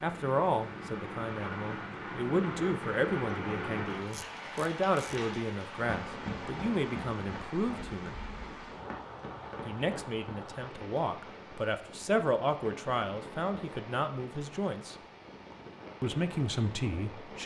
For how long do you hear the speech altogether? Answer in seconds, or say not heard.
15 s.